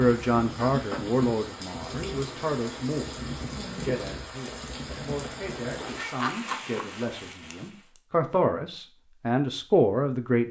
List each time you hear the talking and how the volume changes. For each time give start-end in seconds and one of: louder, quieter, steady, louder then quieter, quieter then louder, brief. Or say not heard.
0.0-10.4 quieter then louder.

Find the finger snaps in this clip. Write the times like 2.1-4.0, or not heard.
6.1-8.0.